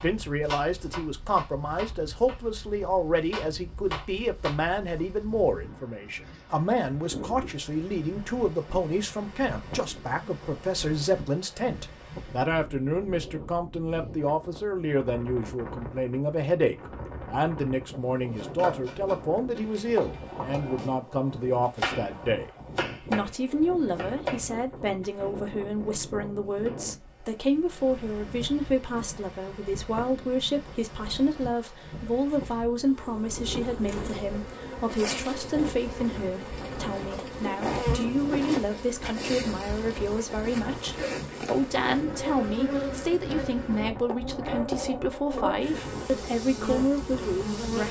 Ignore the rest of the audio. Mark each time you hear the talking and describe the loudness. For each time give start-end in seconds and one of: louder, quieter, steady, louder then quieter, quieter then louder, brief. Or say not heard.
0.0-47.8 steady.